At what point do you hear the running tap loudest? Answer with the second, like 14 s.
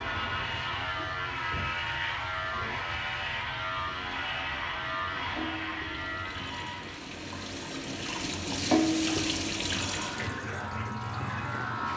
9 s.